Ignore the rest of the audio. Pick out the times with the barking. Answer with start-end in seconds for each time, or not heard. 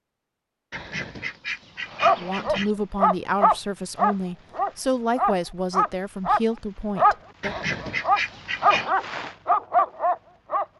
2.0-10.7.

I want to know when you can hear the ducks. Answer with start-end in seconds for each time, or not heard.
0.7-2.8, 7.4-8.9.